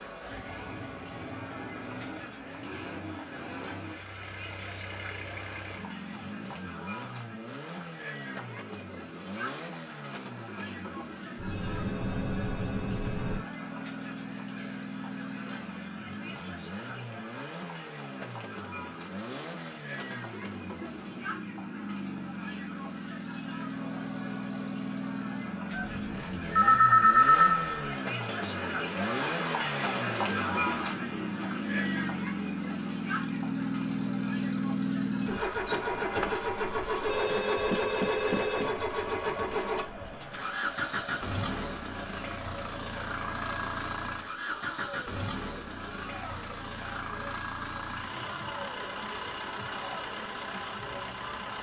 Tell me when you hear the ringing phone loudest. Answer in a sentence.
The volume of the ringing phone peaks at 27 seconds.